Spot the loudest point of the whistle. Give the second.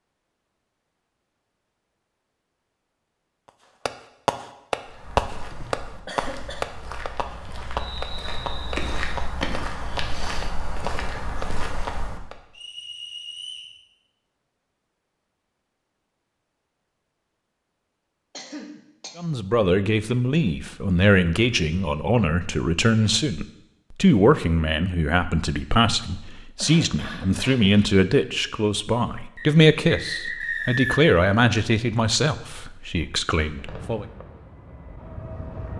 31 s.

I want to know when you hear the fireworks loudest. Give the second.
5 s.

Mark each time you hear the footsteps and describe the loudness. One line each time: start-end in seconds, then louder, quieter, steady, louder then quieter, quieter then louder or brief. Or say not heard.
4.8-12.2 louder.